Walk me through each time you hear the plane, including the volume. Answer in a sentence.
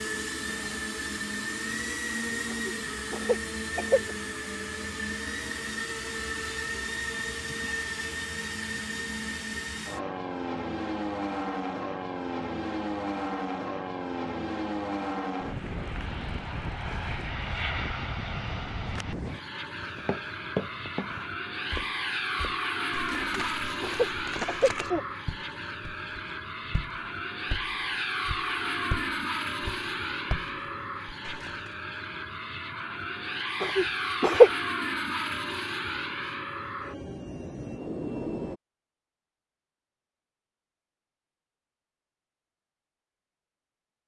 You can hear the plane from 0.0 to 38.6 s, at a steady volume.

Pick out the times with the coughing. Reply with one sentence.
The coughing can be heard from 2.5 to 4.2 s, from 23.2 to 25.1 s and from 33.6 to 34.5 s.